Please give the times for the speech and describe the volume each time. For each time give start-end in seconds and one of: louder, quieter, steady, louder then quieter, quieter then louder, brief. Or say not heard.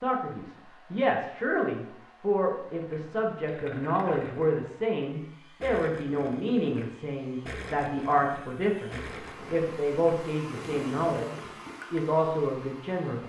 0.0-13.2 steady.